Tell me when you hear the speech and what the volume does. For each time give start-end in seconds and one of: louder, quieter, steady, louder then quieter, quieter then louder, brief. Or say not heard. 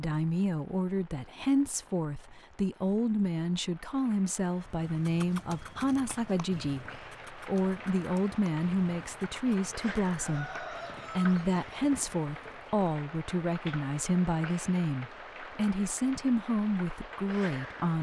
0.0-17.9 steady.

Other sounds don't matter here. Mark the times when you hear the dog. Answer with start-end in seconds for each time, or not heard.
not heard.